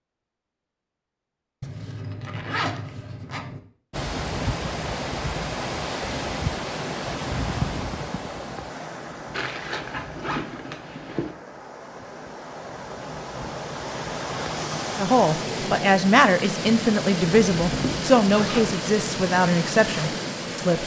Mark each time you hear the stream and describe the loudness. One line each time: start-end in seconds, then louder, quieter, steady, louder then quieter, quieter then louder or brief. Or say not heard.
3.9-20.8 quieter then louder.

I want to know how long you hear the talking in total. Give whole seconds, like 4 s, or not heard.
6 s.